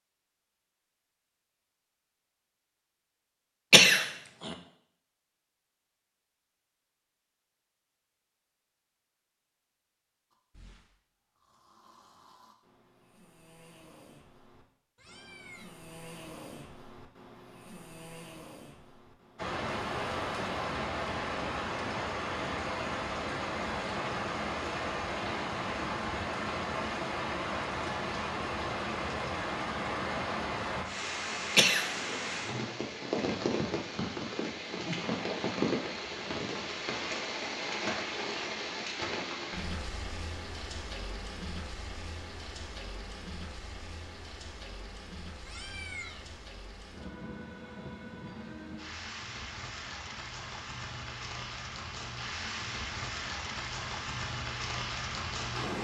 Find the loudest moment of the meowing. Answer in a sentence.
The volume of the meowing peaks at 46 seconds.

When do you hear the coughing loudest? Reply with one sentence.
The volume of the coughing peaks at 4 seconds.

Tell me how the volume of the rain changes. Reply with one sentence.
The volume of the rain goes down, then up.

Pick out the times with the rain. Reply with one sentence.
The rain can be heard from 19.4 to 55.7 s.